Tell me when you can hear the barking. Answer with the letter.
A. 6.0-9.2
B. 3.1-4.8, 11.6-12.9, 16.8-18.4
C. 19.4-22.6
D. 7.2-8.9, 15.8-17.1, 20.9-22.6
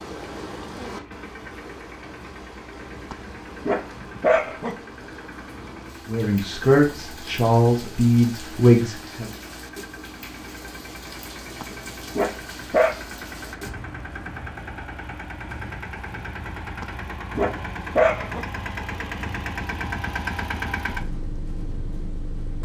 B.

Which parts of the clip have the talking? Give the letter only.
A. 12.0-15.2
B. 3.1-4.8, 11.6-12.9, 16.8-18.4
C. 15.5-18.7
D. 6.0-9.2
D.